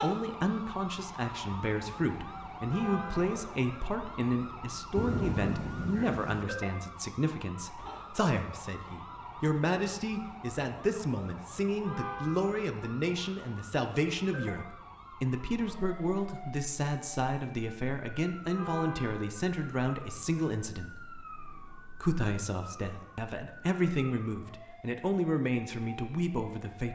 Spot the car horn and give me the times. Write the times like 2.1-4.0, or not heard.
2.7-3.4, 11.8-12.6, 18.6-19.4.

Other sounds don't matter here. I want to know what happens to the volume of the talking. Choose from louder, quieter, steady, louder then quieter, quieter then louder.
steady.